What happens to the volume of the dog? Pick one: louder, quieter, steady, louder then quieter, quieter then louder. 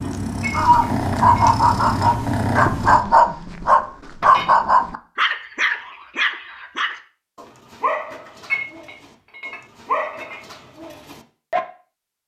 quieter.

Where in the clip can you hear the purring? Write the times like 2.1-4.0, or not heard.
0.0-3.0.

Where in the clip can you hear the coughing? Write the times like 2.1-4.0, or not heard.
not heard.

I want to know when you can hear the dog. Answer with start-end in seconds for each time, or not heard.
0.5-11.6.